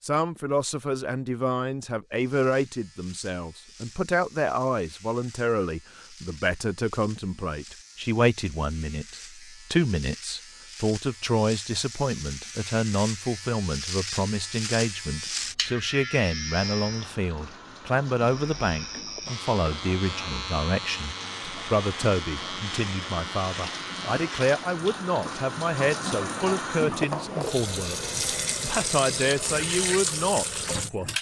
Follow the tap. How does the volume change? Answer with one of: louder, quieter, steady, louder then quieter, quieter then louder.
louder.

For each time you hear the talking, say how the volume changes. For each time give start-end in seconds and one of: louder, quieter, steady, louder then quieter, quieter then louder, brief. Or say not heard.
0.0-31.1 steady.